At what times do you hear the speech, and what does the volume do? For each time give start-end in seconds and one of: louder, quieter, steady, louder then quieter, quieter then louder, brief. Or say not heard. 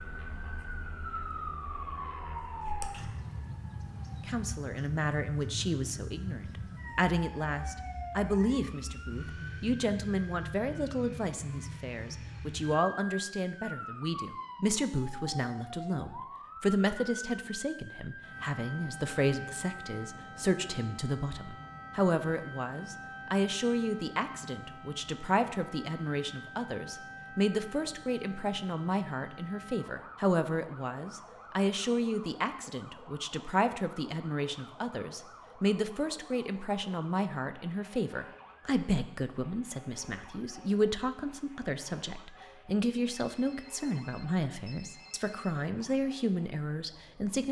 4.2-47.4 steady.